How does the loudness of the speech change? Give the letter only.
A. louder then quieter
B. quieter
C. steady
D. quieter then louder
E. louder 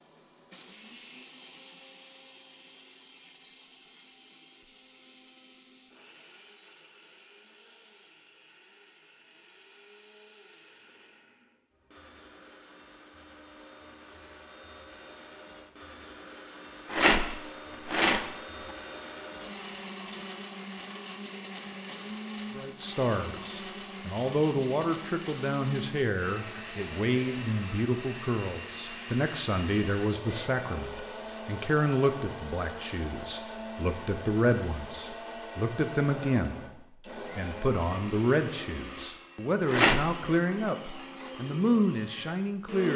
C.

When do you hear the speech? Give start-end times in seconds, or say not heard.
22.6-42.9.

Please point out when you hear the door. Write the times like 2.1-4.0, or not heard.
not heard.